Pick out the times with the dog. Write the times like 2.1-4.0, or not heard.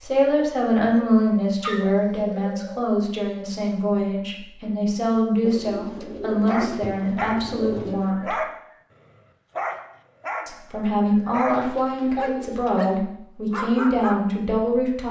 6.5-14.8.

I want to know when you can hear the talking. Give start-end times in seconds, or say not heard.
0.0-8.3, 10.4-15.0.